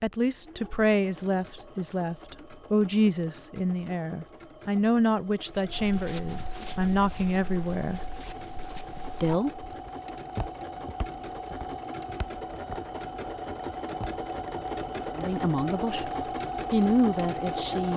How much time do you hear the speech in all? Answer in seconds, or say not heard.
11 s.